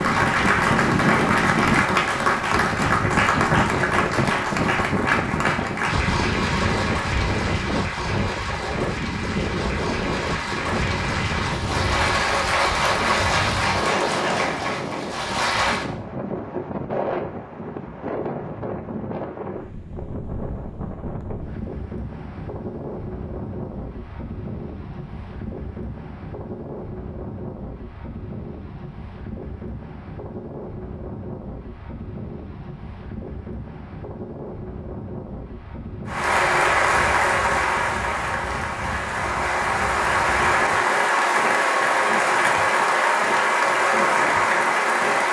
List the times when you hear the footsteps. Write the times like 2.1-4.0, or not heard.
not heard.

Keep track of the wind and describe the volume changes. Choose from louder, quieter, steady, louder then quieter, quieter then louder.
quieter.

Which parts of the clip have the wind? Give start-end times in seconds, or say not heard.
0.0-45.2.